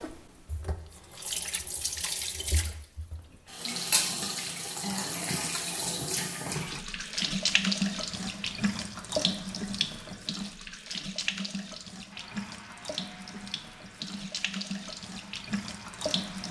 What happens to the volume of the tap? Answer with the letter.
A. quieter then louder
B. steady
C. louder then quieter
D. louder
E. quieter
C.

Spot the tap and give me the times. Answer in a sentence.
You can hear the tap from 0.0 to 16.4 s.